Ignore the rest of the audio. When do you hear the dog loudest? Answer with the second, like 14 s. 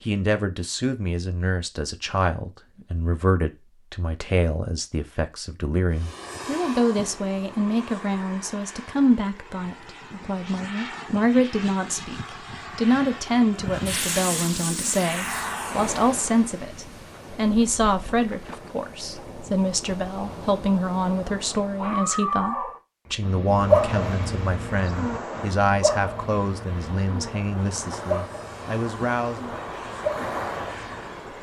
24 s.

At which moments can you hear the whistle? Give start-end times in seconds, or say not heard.
not heard.